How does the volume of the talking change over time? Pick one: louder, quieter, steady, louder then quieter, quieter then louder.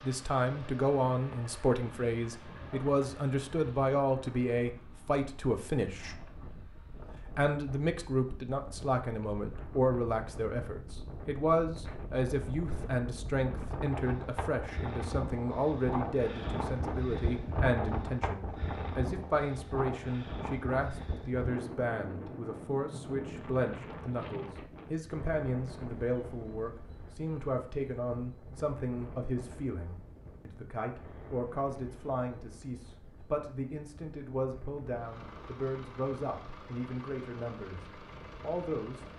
quieter.